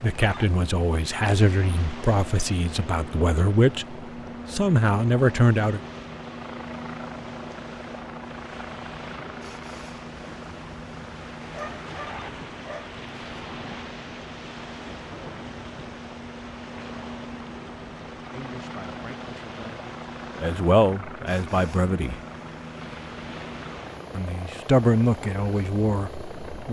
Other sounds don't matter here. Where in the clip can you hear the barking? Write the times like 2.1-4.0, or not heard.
11.5-12.9.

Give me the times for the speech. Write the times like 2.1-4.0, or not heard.
0.0-5.8, 18.3-22.2, 24.1-26.6.